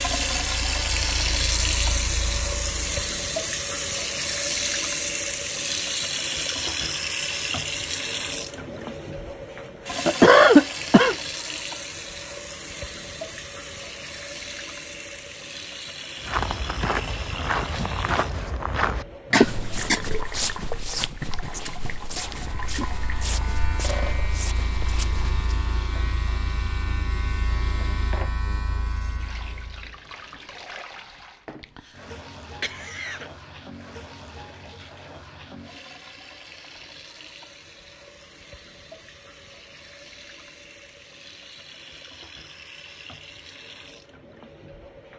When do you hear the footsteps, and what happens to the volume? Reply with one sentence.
The footsteps can be heard from 16.2 to 25.5 s, getting quieter.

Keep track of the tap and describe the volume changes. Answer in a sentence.
The loudness of the tap goes down.